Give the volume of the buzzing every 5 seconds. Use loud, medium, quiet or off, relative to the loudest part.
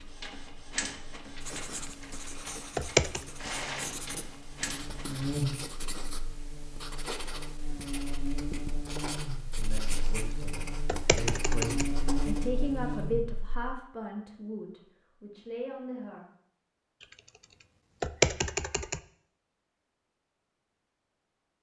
quiet, loud, loud, off, off.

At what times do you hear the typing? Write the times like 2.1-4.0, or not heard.
2.8-3.2, 10.8-11.9, 18.0-19.0.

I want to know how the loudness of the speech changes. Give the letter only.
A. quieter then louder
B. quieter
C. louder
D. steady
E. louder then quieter
E.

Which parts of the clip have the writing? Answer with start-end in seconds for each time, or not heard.
1.4-12.5.